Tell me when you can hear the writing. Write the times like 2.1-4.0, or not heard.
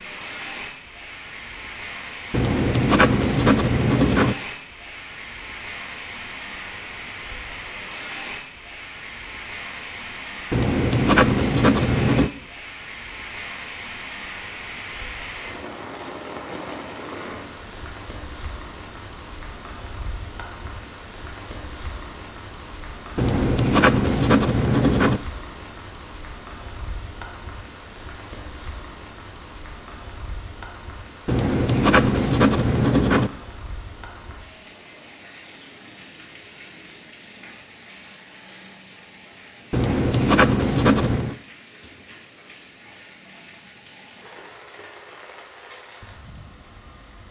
2.3-4.3, 10.5-12.3, 23.1-25.2, 31.2-33.3, 39.7-41.4.